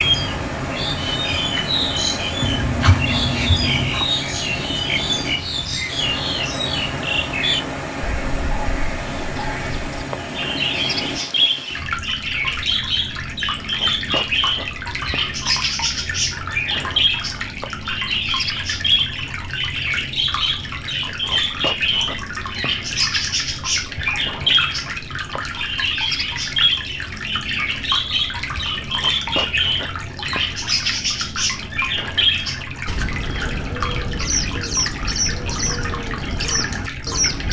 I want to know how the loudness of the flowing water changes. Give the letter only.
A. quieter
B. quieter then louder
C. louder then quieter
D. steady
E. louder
D.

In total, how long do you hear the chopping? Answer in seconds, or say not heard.
2 s.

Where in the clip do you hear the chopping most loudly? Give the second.
3 s.